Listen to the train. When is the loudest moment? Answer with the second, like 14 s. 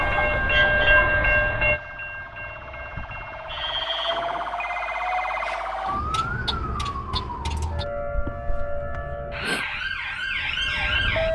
1 s.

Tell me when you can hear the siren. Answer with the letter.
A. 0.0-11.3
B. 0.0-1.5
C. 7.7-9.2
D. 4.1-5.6
A.